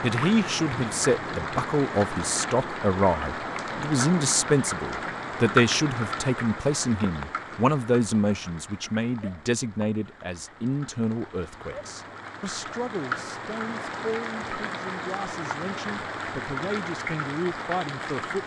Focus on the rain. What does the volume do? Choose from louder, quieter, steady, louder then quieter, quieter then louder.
quieter then louder.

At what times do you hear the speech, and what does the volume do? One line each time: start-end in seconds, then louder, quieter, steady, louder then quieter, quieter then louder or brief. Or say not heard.
0.0-18.4 quieter.